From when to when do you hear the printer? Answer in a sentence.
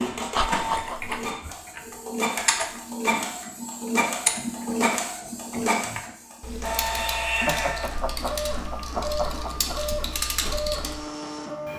You can hear the printer from 0.0 to 11.7 s.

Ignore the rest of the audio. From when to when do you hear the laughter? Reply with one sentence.
The laughter can be heard from 0.3 to 1.4 s and from 7.5 to 9.8 s.